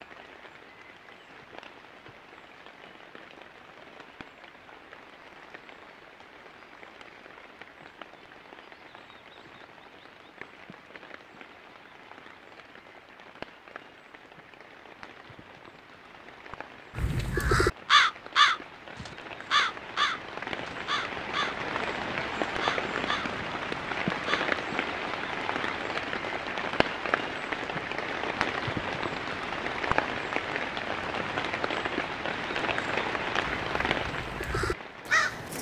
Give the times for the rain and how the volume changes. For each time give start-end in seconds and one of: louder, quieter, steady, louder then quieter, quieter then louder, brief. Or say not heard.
0.0-35.5 louder.